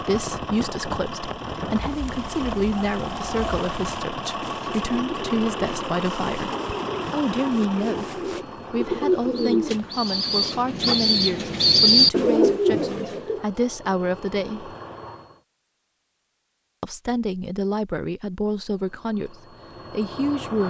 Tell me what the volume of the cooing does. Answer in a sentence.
The volume of the cooing goes up.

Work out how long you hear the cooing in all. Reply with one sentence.
The cooing can be heard for 12 seconds in total.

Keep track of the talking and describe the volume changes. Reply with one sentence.
The volume of the talking stays about the same.